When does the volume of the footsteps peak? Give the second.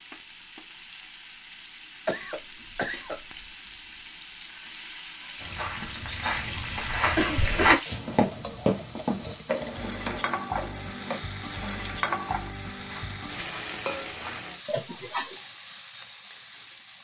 8 s.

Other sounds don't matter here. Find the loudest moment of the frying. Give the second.
12 s.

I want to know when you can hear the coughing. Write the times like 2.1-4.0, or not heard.
2.0-3.2, 7.2-7.8, 14.7-15.3.